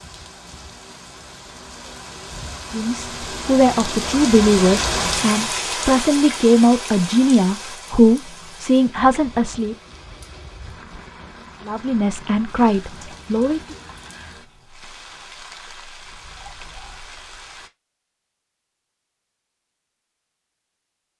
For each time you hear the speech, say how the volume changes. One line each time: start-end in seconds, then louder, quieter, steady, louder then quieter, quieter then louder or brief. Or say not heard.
2.7-9.8 steady
11.7-13.8 brief.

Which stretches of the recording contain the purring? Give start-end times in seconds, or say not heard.
not heard.